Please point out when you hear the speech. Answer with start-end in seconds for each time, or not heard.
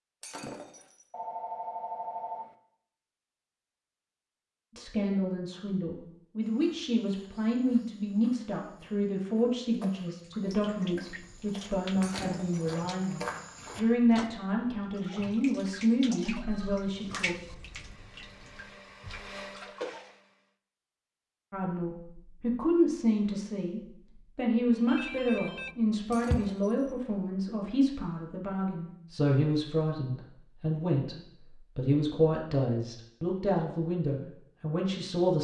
4.8-17.4, 21.5-35.3.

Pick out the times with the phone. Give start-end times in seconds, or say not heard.
1.1-2.5, 16.3-16.9, 24.9-26.4.